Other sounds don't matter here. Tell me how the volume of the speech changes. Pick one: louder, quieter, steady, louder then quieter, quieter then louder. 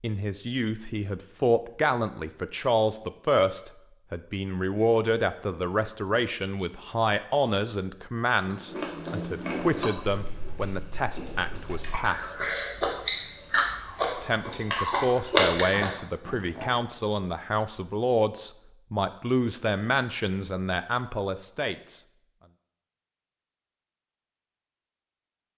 steady.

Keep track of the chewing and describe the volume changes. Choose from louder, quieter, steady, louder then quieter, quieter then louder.
quieter then louder.